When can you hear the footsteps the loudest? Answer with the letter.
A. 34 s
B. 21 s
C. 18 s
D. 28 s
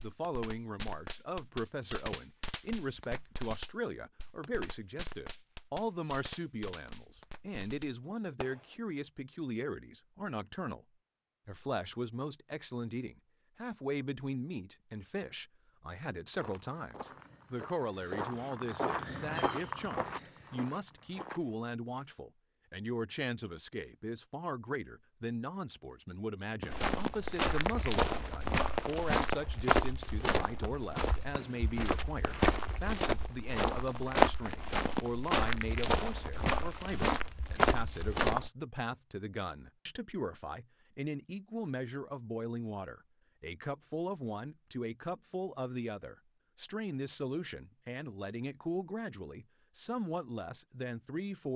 A.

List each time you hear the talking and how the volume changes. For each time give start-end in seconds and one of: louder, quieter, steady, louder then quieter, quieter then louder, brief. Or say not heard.
0.0-10.8 steady
11.4-51.5 steady.